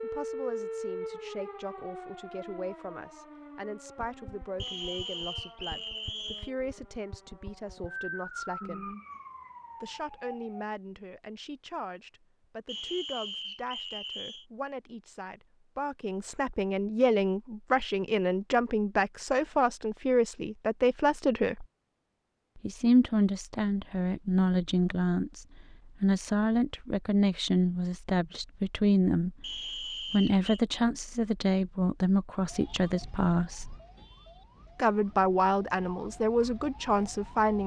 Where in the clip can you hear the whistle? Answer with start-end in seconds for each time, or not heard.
4.5-6.5, 12.7-14.4, 29.4-30.6.